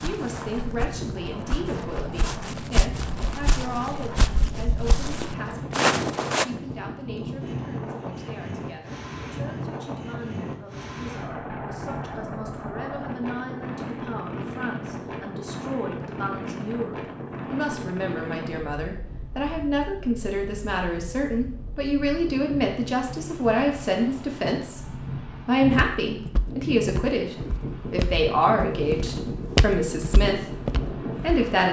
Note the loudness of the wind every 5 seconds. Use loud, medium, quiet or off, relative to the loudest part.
loud, loud, loud, loud, medium, loud, loud.